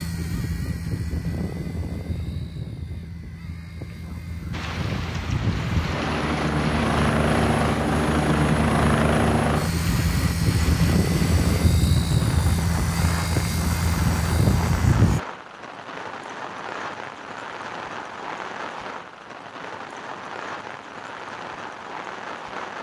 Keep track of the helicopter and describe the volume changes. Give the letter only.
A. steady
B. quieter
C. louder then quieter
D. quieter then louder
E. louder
E.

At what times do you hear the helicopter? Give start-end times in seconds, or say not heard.
0.0-15.2.